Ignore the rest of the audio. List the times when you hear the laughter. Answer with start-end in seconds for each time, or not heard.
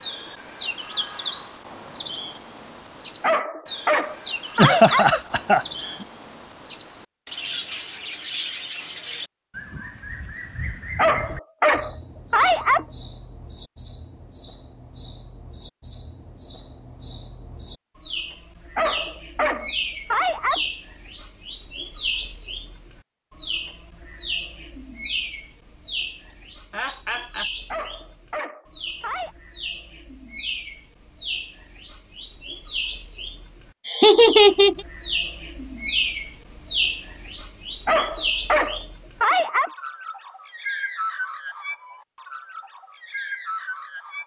4.5-6.0, 26.3-27.5, 33.9-34.8.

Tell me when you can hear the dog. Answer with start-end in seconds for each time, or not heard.
3.2-5.1, 10.9-12.8, 18.8-20.6, 27.7-29.4, 37.9-39.7.